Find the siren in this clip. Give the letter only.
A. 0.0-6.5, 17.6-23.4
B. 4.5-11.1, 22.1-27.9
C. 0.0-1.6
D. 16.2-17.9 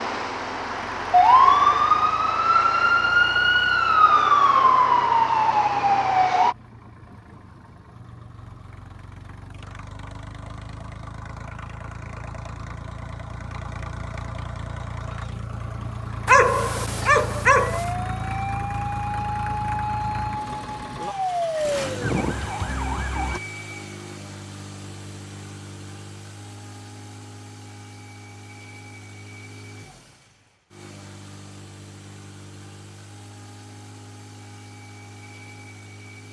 A.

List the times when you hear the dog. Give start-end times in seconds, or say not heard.
16.2-17.9.